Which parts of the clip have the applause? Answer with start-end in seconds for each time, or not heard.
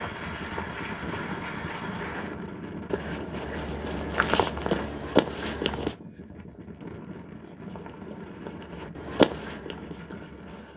0.0-2.2.